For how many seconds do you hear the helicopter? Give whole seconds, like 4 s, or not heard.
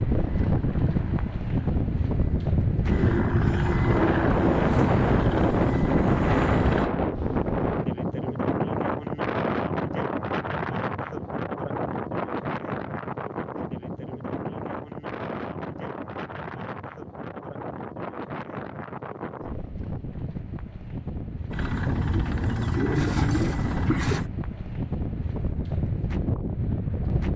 10 s.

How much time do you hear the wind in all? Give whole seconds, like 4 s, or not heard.
27 s.